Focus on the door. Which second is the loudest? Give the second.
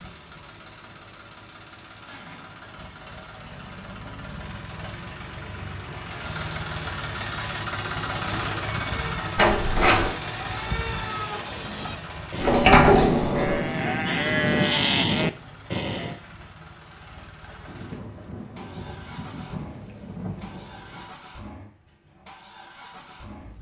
13 s.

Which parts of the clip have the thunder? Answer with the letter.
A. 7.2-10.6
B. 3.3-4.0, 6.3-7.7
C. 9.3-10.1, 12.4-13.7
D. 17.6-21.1
D.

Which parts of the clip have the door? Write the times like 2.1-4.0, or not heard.
9.3-10.1, 12.4-13.7.